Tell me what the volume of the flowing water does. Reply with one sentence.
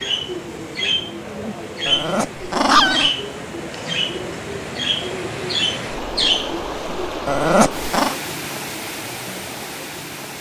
The loudness of the flowing water goes up.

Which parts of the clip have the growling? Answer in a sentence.
The growling can be heard from 1.9 to 3.1 s and from 7.2 to 8.2 s.